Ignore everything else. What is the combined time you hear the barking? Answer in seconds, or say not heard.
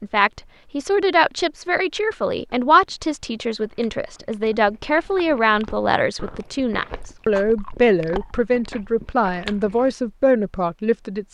not heard.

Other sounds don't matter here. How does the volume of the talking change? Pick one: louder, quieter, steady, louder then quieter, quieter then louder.
steady.